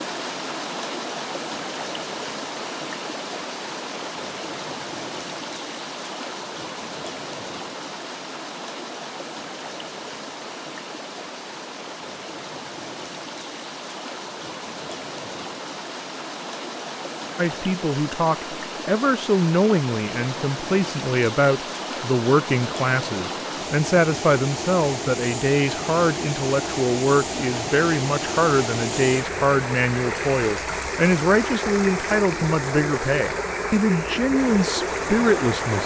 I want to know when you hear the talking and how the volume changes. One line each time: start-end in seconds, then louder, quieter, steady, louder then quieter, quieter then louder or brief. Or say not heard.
17.4-35.8 steady.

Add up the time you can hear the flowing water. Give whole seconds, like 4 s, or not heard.
36 s.